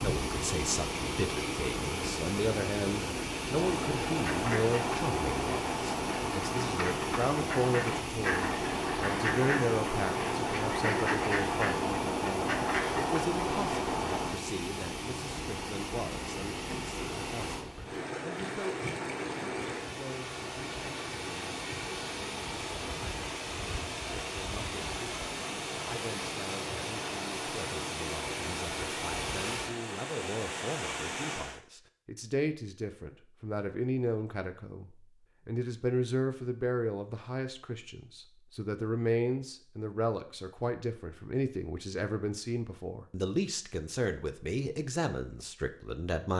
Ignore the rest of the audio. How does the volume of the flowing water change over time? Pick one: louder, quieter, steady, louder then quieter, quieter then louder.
steady.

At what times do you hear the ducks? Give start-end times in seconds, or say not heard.
3.5-14.3.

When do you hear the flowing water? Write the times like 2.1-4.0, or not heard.
0.0-31.6.